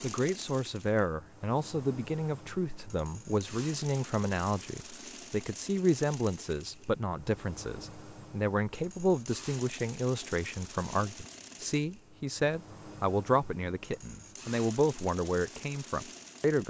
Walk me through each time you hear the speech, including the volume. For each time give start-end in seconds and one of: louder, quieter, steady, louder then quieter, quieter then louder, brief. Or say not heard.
0.0-16.6 steady.